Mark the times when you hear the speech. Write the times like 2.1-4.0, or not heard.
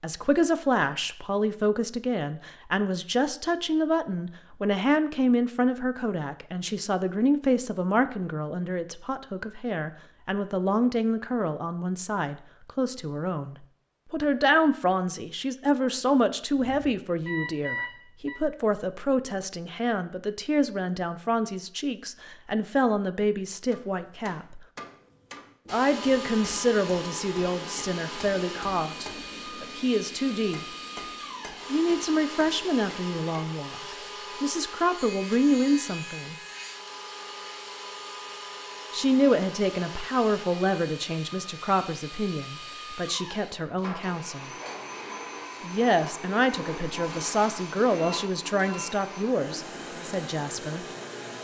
0.0-24.6, 25.7-30.6, 31.7-36.4, 38.9-44.5, 45.6-50.9.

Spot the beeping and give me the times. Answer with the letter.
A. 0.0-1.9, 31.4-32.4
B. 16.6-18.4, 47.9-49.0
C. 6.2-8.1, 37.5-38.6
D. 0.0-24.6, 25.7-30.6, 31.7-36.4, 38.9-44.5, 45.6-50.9
B.